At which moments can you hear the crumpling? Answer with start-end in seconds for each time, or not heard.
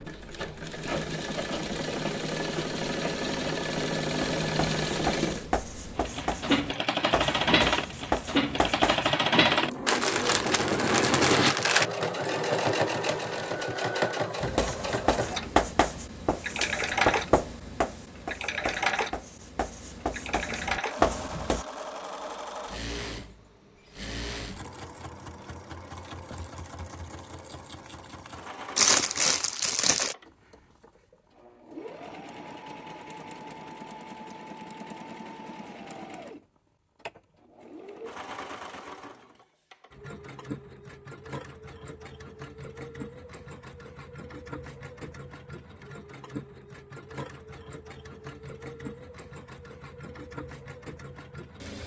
9.8-11.8, 28.8-30.1.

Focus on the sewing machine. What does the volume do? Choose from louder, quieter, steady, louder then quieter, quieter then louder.
quieter.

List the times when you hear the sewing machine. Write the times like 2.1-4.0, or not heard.
0.0-51.8.